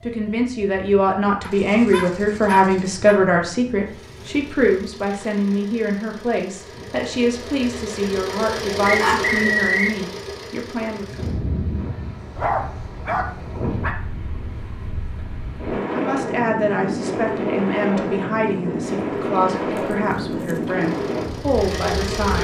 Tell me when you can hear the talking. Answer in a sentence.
The talking can be heard from 0.0 to 11.1 s and from 15.9 to 22.3 s.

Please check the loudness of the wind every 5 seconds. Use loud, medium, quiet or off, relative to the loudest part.
quiet, quiet, medium, loud, loud.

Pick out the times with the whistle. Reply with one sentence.
You can hear the whistle from 8.8 to 9.9 s.